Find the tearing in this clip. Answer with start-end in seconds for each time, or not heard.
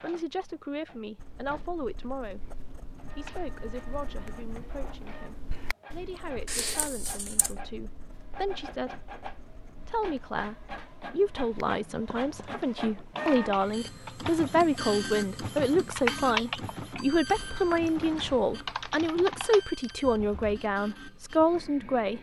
6.5-7.5.